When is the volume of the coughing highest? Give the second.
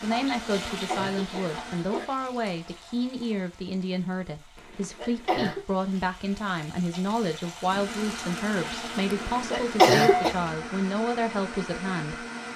10 s.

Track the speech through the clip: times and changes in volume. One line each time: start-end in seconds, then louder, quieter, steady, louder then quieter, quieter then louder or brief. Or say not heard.
0.0-12.2 steady.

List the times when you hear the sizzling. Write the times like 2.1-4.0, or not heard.
0.0-10.4.